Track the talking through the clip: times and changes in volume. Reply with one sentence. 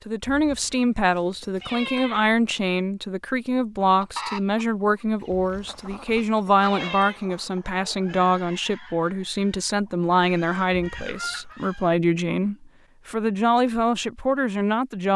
The talking can be heard from 0.1 to 15.1 s, at a steady volume.